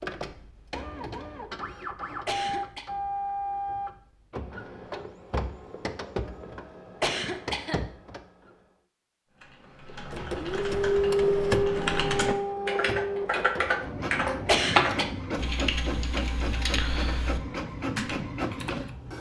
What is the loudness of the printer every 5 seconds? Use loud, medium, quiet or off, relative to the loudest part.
medium, medium, loud, medium.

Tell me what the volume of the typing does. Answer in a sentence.
The loudness of the typing goes up, then down.